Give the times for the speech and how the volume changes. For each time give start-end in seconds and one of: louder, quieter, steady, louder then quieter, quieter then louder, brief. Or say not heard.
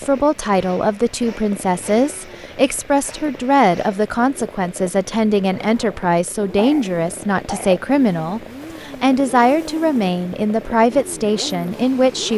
0.0-12.3 steady.